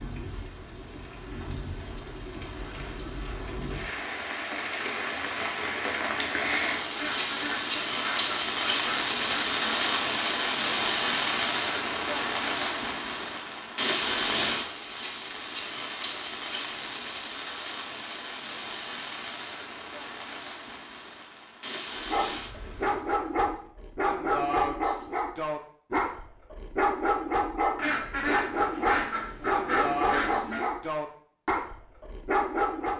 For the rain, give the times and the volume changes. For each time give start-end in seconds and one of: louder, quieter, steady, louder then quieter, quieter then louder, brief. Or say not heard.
0.0-23.1 louder then quieter.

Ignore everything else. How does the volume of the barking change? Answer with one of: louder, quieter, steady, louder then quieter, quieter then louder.
steady.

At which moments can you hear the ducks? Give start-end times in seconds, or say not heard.
7.0-9.9, 27.8-30.6.